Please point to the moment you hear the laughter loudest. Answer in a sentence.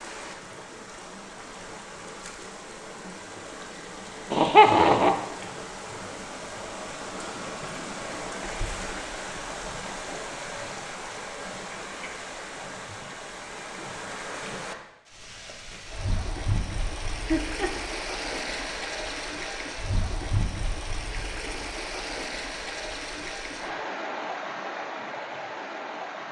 The volume of the laughter peaks at 5 seconds.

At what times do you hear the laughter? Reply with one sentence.
The laughter can be heard from 4.3 to 5.1 s and from 17.2 to 17.7 s.